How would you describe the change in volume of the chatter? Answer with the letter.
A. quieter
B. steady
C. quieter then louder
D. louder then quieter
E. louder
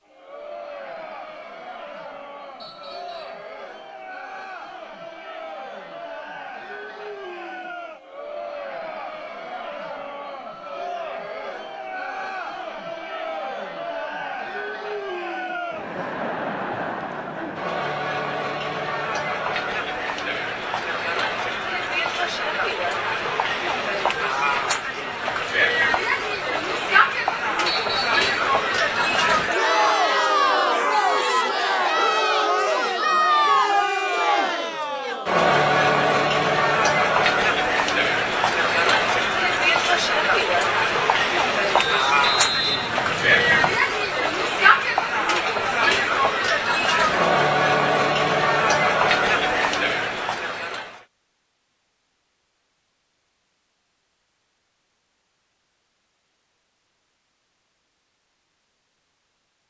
E.